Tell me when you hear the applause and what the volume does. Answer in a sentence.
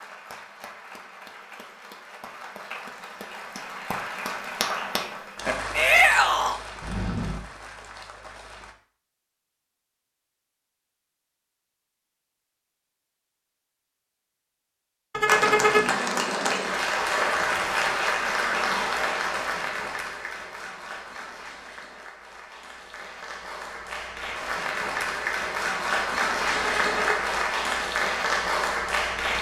You can hear the applause from 0.0 to 8.8 s, getting louder then quieter; and from 15.2 to 29.3 s, getting quieter then louder.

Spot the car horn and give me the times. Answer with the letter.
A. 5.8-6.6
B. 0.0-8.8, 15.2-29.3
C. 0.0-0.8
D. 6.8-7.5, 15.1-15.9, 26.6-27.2
D.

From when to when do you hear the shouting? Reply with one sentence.
You can hear the shouting from 5.8 to 6.6 s.